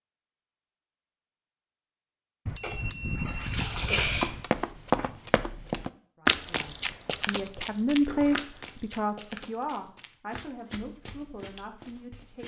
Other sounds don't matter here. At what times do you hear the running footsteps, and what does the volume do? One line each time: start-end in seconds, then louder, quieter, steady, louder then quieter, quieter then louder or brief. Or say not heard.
4.2-12.4 quieter.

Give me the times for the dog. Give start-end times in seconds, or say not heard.
not heard.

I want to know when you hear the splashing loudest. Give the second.
4 s.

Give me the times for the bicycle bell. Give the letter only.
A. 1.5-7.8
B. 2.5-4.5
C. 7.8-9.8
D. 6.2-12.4
B.